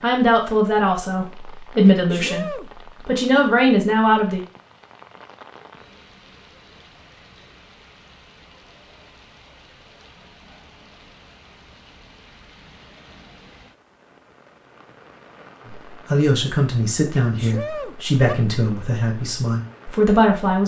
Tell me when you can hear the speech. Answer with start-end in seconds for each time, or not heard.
0.0-4.4, 15.7-20.6.